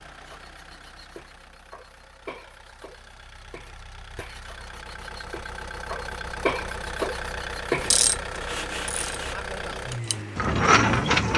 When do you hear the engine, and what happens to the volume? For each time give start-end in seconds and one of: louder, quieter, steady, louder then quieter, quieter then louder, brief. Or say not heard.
0.0-11.2 louder.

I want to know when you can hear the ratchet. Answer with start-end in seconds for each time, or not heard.
7.8-11.3.